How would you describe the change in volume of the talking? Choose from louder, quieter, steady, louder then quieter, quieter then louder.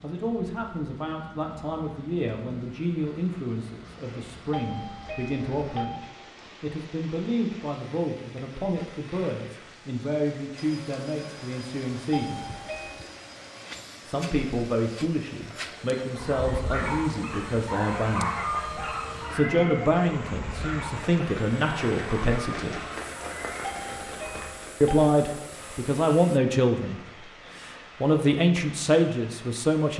louder.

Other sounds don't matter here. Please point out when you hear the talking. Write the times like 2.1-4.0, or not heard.
0.0-12.4, 14.1-22.8, 24.8-29.9.